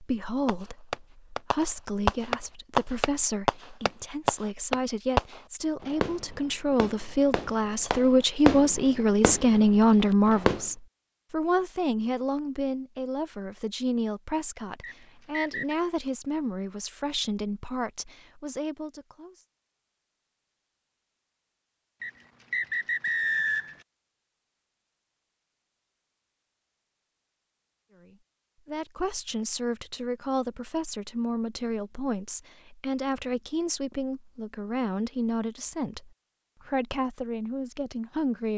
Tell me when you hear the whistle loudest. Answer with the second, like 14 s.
23 s.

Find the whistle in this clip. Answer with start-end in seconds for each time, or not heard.
14.8-15.8, 22.0-23.8.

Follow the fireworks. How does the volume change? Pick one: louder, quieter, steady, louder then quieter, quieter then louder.
quieter then louder.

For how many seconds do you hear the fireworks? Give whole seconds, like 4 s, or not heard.
10 s.